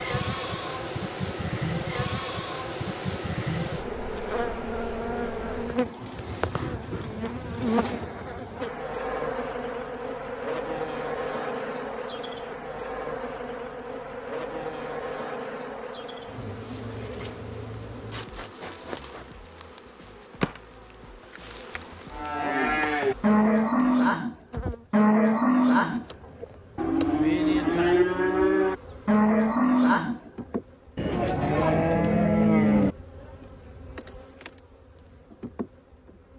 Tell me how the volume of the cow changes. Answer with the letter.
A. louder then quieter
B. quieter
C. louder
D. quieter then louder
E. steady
E.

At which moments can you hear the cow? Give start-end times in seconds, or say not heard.
22.1-33.0.